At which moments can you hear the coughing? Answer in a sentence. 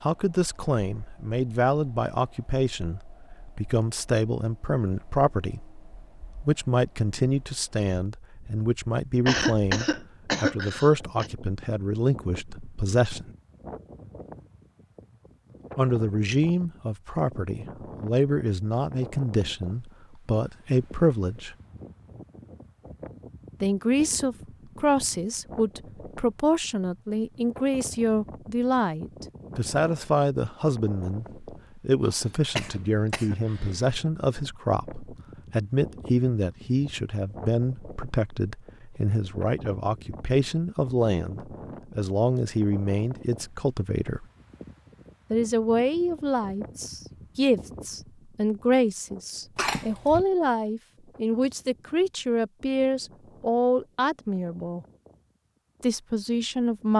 The coughing can be heard from 9.2 to 11.3 s, from 32.0 to 33.7 s and from 49.5 to 50.2 s.